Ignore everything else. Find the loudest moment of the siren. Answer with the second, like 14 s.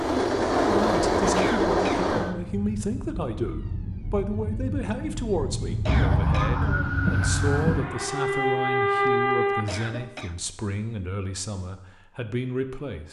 9 s.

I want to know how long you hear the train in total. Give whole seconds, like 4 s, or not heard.
2 s.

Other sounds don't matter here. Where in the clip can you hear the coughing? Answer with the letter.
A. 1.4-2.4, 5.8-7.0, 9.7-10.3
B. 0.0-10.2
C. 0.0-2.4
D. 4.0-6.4
A.